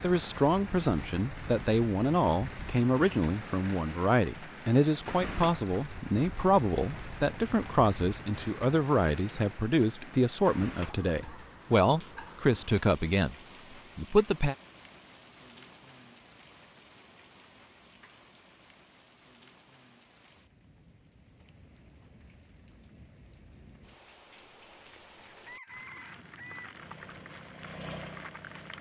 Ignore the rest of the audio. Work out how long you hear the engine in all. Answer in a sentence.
You can hear the engine for 2 seconds altogether.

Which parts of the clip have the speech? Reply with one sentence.
You can hear the speech from 0.0 to 13.3 s and from 13.9 to 14.6 s.